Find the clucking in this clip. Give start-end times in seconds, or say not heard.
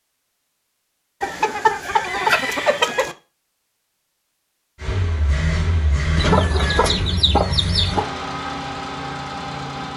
1.2-3.1, 6.2-8.1.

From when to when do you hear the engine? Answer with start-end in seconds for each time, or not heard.
4.8-9.9.